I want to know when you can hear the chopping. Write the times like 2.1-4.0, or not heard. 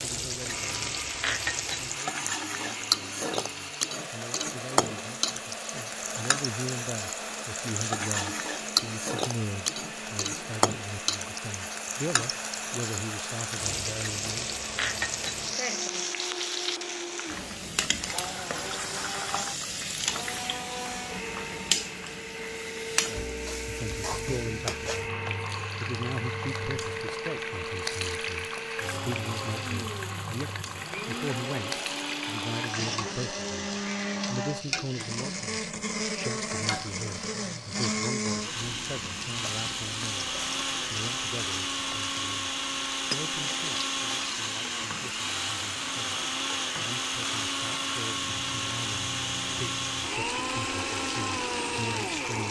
not heard.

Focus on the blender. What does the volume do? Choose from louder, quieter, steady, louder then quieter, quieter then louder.
louder.